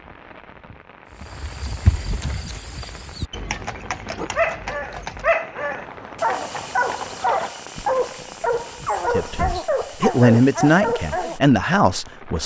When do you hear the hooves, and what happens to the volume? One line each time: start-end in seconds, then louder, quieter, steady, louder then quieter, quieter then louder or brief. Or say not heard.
1.1-10.1 quieter.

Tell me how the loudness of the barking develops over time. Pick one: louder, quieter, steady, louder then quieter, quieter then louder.
steady.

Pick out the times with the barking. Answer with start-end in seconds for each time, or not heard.
4.2-11.4.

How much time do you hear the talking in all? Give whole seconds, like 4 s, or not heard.
3 s.